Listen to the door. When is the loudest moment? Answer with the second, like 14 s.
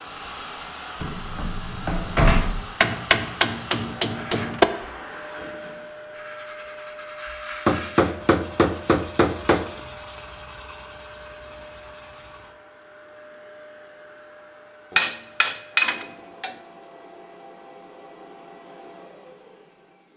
2 s.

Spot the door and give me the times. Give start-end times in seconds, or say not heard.
1.0-2.6.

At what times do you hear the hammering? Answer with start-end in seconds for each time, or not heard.
2.8-4.7, 7.7-9.7, 14.9-16.6.